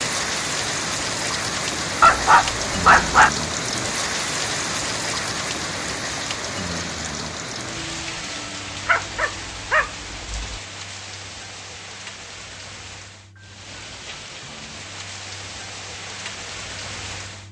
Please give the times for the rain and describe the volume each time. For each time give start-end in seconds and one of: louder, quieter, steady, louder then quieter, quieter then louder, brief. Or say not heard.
0.0-17.4 quieter.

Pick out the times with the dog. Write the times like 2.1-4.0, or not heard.
2.0-3.3, 8.8-10.6.